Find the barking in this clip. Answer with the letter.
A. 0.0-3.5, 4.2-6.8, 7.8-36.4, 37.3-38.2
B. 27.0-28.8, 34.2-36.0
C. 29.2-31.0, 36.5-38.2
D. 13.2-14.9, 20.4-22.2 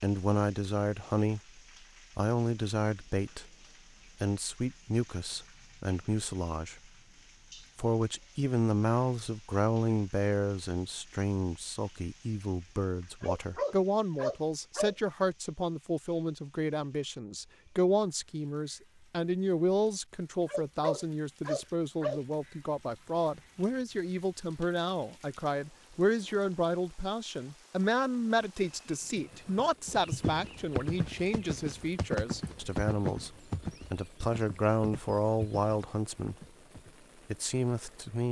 D.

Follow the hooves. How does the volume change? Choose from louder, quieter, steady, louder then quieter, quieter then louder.
quieter.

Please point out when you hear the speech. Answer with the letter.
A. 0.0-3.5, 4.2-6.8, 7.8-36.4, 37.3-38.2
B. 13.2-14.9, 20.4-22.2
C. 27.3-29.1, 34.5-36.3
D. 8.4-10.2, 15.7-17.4
A.